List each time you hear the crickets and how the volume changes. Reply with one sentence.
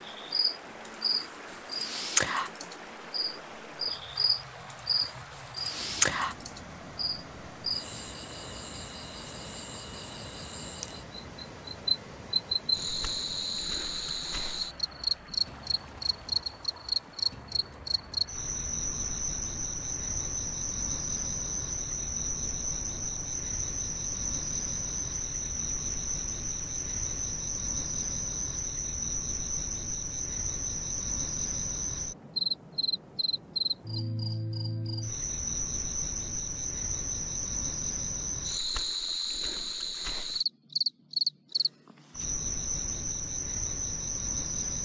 The crickets can be heard from 0.1 to 44.8 s, at a steady volume.